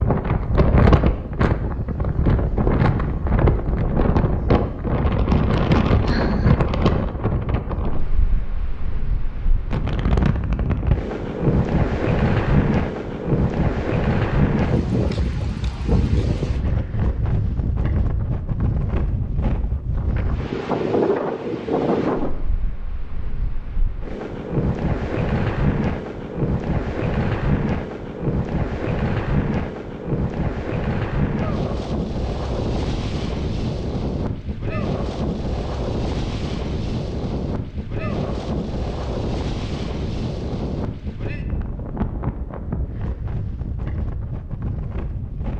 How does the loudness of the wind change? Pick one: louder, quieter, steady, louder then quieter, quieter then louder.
quieter.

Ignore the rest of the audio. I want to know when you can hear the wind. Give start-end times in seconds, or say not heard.
0.0-45.5.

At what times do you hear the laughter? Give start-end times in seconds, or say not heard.
5.9-6.6.